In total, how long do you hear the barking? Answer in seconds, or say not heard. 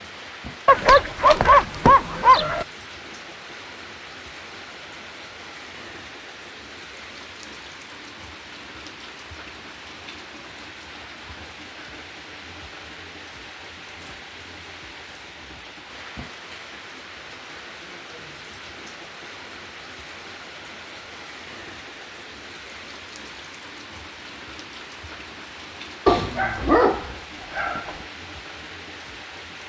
4 s.